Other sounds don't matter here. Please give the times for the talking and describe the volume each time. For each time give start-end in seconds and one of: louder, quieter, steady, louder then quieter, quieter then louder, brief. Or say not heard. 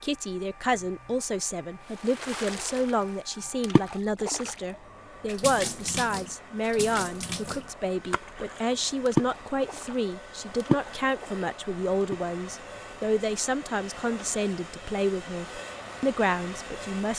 0.0-17.1 steady.